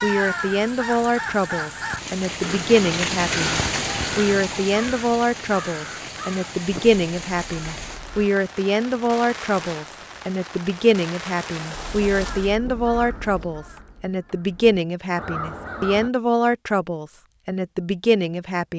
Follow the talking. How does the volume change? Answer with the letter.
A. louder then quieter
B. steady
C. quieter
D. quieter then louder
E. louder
B.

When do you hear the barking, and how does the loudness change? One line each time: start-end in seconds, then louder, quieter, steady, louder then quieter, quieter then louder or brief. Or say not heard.
not heard.